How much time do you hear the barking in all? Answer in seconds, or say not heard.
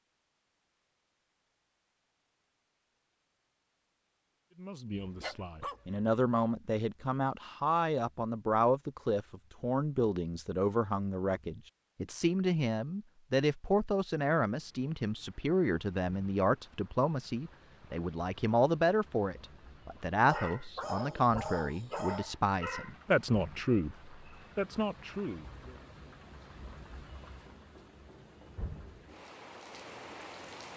4 s.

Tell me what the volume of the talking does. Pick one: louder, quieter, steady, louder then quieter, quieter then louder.
steady.